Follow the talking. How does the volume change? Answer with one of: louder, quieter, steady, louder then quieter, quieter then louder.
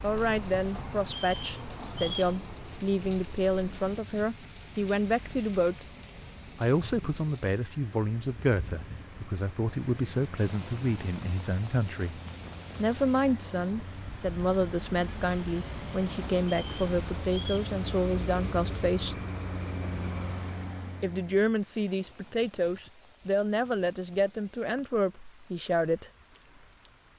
steady.